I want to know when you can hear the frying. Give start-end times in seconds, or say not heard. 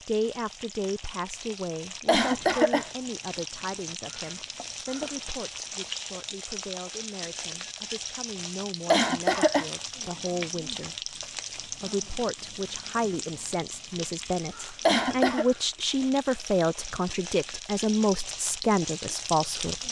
0.0-19.8.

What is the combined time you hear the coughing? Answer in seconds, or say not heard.
2 s.